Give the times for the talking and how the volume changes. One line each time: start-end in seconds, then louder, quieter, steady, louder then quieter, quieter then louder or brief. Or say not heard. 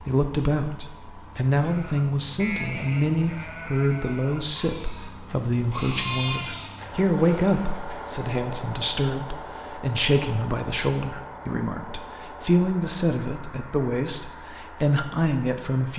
0.0-15.9 steady.